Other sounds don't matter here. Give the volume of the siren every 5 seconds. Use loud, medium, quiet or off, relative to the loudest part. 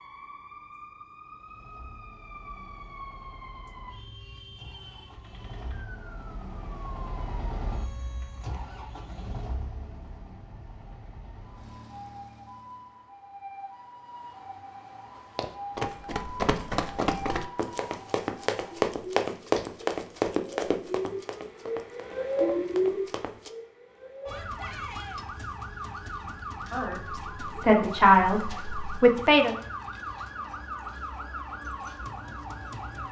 quiet, quiet, quiet, medium, loud, medium, medium.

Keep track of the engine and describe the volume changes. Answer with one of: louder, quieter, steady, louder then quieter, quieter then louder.
louder then quieter.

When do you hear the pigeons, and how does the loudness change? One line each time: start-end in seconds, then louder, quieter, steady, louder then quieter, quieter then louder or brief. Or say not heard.
not heard.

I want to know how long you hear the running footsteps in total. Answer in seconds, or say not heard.
8 s.